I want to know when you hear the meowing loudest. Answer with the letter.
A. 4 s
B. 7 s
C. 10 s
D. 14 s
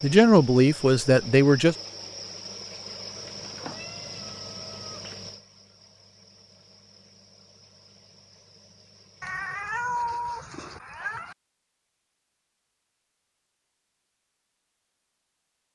C.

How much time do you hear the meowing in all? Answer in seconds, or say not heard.
4 s.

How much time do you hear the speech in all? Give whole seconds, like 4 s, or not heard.
2 s.